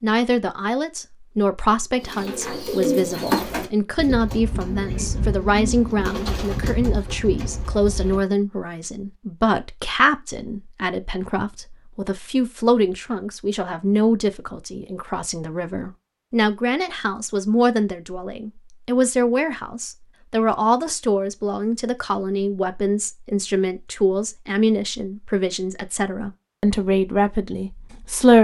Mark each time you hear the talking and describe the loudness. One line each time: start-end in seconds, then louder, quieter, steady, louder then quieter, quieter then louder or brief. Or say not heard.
0.0-28.3 steady.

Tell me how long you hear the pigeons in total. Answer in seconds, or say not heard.
6 s.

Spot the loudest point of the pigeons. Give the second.
3 s.